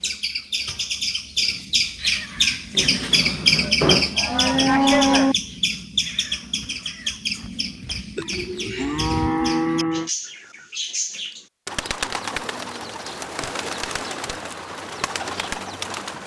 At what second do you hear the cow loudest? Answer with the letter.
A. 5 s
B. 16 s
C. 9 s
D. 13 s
A.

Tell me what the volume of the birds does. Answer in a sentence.
The volume of the birds goes down.